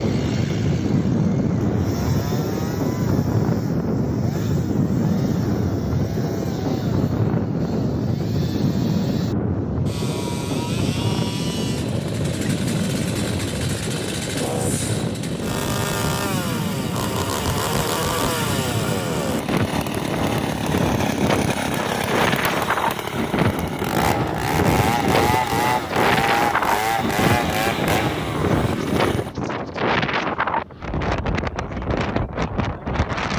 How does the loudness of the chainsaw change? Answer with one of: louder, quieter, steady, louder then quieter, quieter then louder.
louder.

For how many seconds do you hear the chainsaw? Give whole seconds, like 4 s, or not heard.
29 s.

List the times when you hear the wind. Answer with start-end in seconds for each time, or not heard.
0.0-33.3.